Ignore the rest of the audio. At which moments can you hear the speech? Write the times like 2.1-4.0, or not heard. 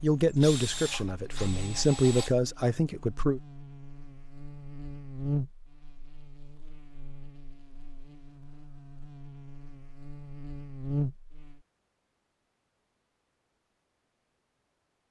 0.0-3.4.